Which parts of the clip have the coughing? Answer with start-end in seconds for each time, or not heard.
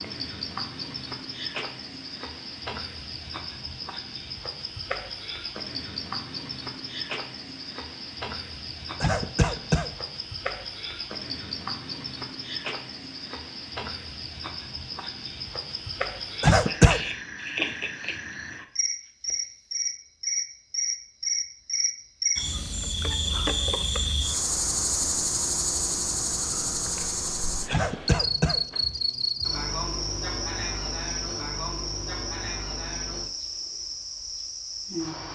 9.0-9.9, 16.4-17.0, 27.7-28.6.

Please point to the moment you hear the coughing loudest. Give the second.
17 s.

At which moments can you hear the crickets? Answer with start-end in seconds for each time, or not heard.
0.0-35.3.